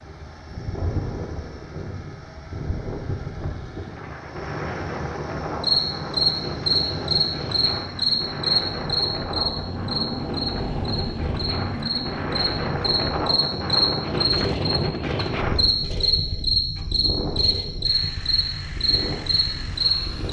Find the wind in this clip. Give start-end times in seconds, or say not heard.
0.0-20.2.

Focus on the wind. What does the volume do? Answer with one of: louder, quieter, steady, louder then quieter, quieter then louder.
louder then quieter.